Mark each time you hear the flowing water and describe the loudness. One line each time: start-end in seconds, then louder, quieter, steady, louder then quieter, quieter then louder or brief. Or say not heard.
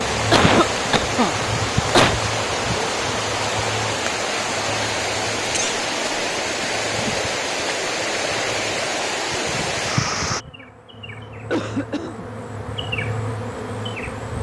0.0-10.4 steady.